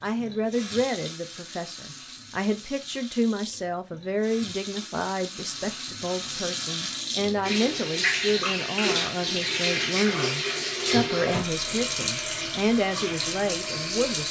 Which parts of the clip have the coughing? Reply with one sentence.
You can't hear the coughing here.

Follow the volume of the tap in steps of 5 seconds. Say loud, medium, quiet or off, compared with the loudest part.
quiet, loud, loud.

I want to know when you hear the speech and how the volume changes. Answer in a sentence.
You can hear the speech from 0.0 to 14.2 s, at a steady volume.